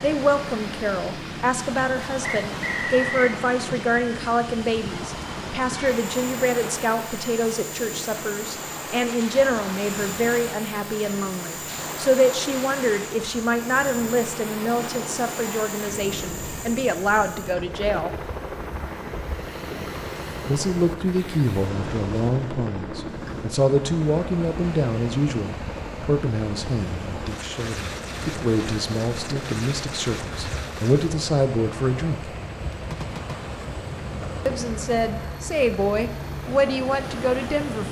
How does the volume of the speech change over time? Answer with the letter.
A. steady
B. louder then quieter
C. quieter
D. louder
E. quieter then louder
A.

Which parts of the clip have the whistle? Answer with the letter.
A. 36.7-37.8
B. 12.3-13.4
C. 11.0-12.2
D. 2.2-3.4
D.